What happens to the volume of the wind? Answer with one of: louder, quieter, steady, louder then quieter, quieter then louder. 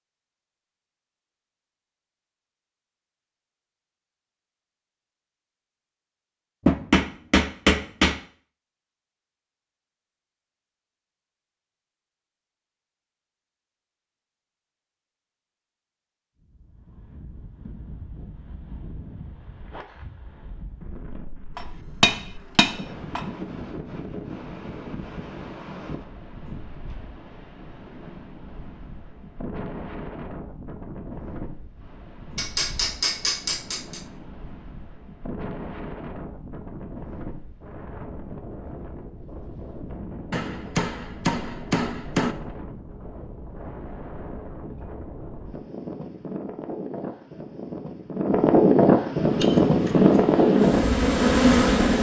louder.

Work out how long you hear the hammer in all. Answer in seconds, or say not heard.
7 s.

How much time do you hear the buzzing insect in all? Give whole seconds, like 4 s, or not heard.
3 s.